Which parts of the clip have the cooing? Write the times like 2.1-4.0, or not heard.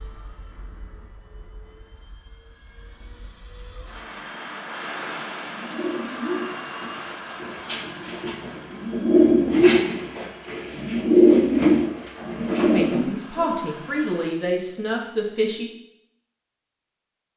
5.4-13.6.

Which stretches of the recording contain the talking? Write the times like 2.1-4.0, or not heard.
12.7-15.7.